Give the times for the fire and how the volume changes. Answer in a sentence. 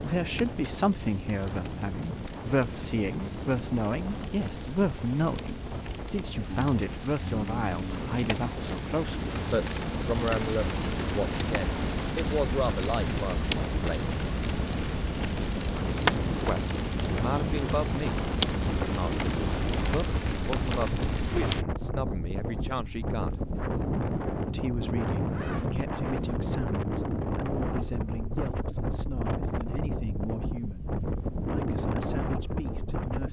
You can hear the fire from 0.0 to 21.6 s, getting louder.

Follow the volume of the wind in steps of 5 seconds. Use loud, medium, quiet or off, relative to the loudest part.
medium, medium, medium, loud, loud, loud, loud.